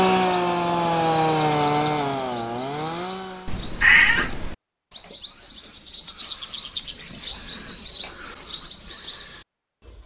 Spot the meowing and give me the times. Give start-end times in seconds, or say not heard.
3.5-4.5.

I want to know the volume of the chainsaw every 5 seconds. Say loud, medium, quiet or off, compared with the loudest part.
loud, off.